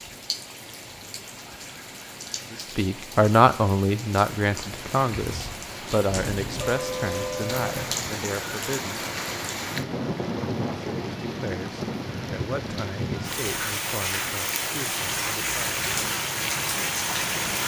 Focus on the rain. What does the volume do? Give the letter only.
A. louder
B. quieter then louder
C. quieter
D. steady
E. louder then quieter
A.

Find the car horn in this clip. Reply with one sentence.
You can hear the car horn from 6.0 to 8.1 s.